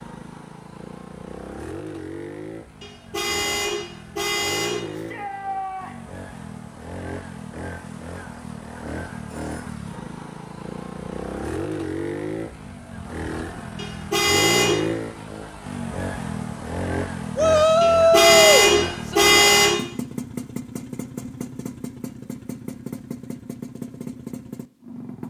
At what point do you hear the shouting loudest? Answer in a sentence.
The volume of the shouting peaks at 18 seconds.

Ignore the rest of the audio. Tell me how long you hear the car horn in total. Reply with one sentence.
The car horn can be heard for 5 seconds in total.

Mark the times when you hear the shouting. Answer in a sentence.
The shouting can be heard from 4.9 to 6.0 s and from 17.4 to 19.2 s.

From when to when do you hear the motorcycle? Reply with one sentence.
The motorcycle can be heard from 0.0 to 25.2 s.